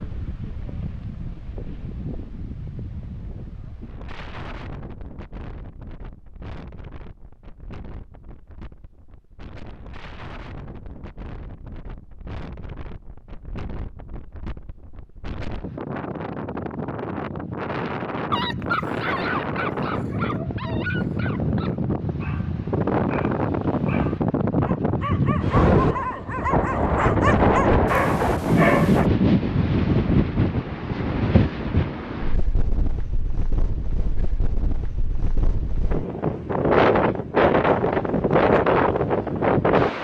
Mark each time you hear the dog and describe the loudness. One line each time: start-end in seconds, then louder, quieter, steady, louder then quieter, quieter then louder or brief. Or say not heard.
18.3-29.1 quieter then louder.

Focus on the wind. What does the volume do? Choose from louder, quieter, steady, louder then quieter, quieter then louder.
louder.